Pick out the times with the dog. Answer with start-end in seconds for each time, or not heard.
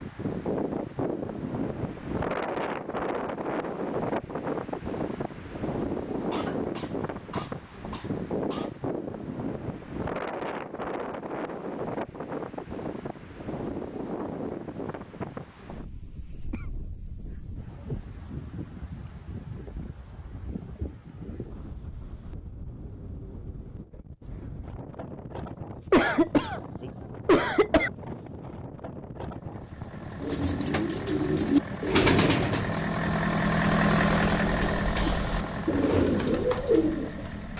not heard.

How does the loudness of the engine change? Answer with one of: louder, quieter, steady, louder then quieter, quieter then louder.
louder then quieter.